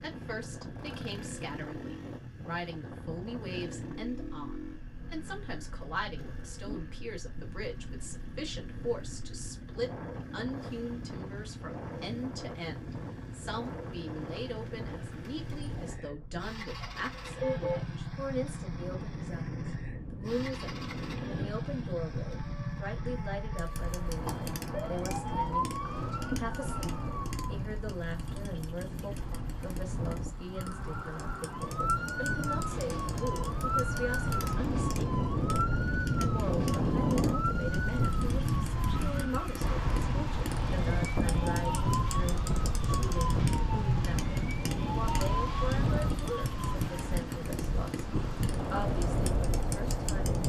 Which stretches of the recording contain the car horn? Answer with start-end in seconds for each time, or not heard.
16.8-17.9.